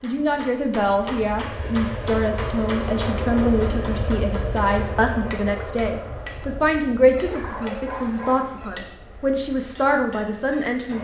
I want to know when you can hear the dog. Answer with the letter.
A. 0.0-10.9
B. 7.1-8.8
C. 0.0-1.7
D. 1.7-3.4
B.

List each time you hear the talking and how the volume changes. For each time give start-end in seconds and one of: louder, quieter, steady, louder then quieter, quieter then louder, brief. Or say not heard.
0.0-10.9 steady.